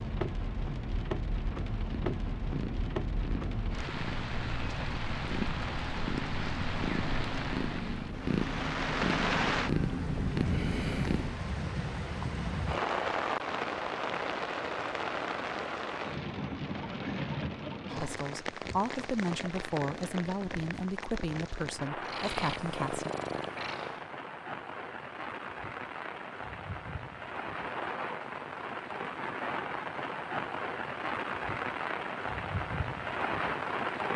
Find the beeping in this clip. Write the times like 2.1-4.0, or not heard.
not heard.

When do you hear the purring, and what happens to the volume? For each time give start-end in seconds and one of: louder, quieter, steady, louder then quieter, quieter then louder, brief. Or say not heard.
1.9-11.4 louder
22.0-24.1 brief.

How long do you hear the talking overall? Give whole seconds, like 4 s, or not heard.
5 s.